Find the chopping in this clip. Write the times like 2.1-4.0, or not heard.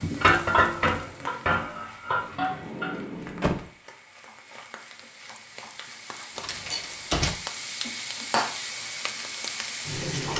not heard.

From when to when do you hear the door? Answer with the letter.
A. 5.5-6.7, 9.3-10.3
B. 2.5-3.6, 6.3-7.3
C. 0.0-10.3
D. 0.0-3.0
B.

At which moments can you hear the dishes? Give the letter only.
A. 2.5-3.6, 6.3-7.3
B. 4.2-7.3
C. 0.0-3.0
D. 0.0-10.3
C.